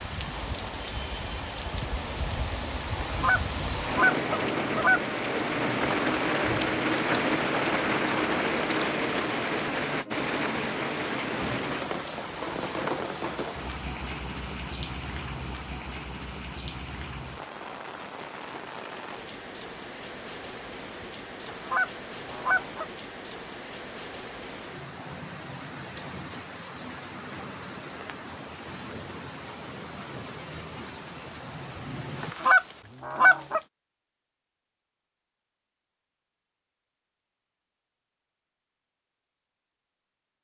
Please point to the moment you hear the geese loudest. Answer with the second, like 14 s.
33 s.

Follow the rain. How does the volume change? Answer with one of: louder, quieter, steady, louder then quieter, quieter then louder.
quieter.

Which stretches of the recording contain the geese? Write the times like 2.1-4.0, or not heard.
3.0-5.0, 21.4-22.9, 32.2-33.6.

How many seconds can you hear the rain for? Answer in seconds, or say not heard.
32 s.